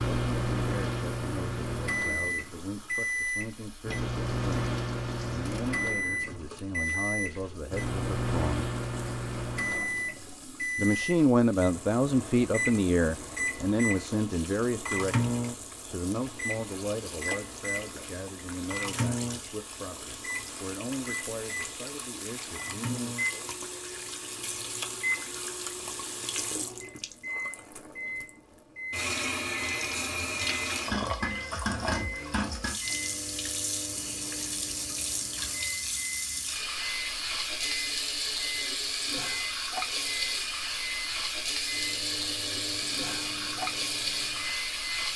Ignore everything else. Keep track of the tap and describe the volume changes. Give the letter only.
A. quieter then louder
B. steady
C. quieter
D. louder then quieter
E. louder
E.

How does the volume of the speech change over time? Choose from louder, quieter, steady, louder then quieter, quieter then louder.
louder then quieter.